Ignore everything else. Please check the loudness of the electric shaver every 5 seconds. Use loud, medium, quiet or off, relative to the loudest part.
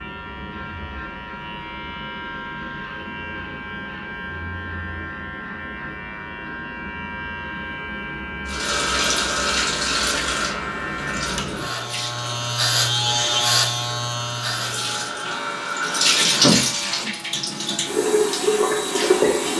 medium, medium, loud, medium.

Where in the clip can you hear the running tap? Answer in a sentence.
The running tap can be heard from 8.4 to 19.5 s.